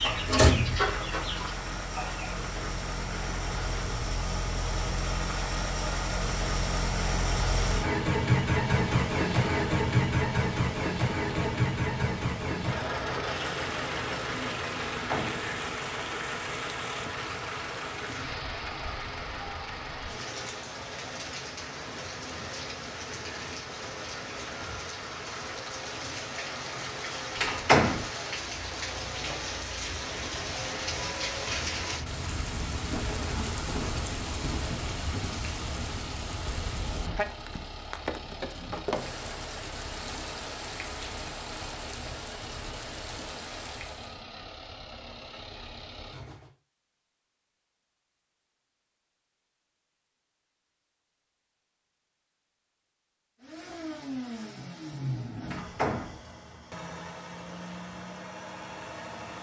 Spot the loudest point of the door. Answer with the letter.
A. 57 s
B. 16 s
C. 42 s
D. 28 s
D.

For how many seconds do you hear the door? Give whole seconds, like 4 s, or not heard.
2 s.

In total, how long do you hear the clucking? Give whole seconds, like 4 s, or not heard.
2 s.